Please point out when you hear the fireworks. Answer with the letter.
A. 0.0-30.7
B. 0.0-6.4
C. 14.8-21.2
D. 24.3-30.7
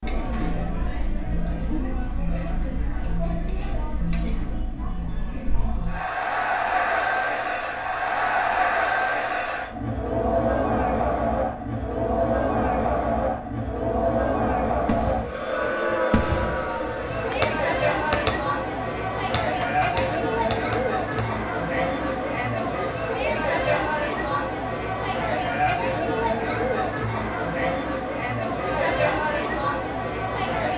C.